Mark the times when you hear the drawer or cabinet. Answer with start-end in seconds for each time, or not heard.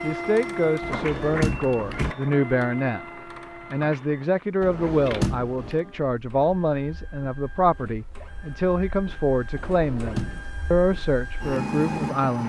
0.8-2.1, 4.6-5.8, 9.6-10.5.